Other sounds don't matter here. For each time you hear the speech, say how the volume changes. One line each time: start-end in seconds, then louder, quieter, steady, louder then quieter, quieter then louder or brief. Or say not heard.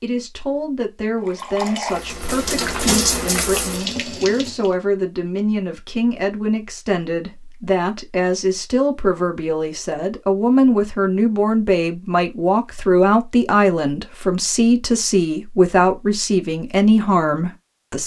0.0-18.0 louder.